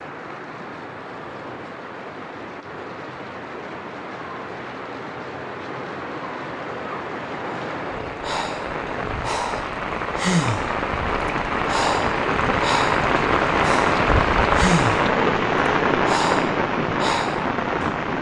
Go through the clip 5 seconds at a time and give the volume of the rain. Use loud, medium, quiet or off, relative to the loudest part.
quiet, medium, loud, loud.